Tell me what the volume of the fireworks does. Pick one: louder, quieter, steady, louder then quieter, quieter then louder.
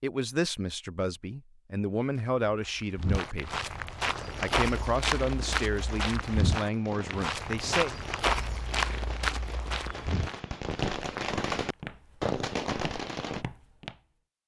louder.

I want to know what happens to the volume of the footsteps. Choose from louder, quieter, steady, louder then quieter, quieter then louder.
quieter.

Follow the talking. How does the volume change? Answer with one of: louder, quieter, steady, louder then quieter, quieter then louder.
steady.